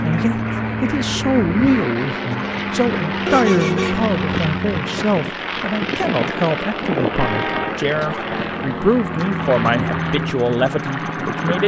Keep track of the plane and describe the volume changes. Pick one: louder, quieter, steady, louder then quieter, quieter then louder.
steady.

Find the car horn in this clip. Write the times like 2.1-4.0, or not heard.
3.2-4.0, 7.2-7.8.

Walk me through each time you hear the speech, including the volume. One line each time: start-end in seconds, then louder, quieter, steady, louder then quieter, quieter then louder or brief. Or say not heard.
0.0-11.6 steady.